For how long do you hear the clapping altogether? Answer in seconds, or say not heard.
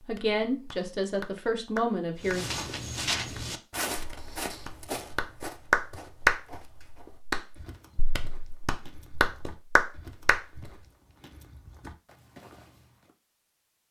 10 s.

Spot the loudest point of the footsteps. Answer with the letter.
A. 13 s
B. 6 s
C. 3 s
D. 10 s
C.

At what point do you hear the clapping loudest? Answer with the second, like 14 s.
6 s.